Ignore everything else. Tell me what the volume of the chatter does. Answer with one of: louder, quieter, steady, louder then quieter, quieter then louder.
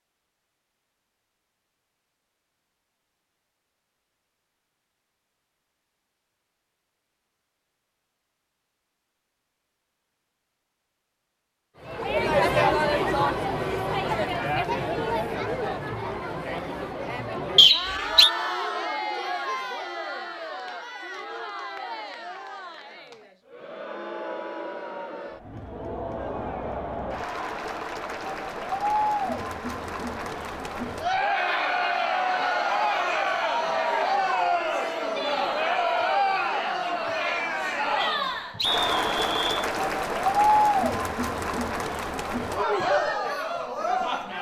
quieter then louder.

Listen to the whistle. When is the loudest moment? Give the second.
18 s.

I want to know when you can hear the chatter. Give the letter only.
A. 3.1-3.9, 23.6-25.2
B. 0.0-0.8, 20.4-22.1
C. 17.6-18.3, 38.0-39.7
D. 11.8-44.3
D.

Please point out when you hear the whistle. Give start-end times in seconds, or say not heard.
17.6-18.3, 38.0-39.7.